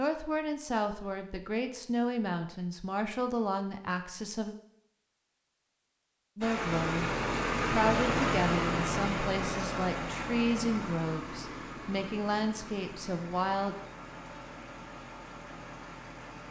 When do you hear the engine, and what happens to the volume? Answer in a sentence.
You can hear the engine from 6.4 to 16.4 s, getting quieter.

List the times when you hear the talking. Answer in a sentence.
You can hear the talking from 0.0 to 4.5 s and from 6.3 to 13.8 s.